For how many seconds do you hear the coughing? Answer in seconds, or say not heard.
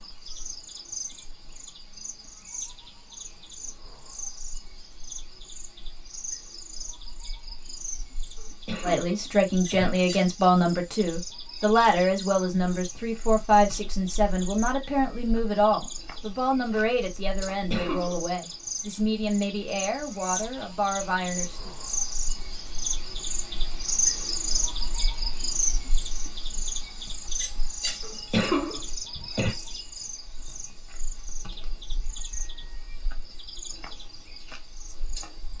4 s.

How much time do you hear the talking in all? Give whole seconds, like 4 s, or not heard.
13 s.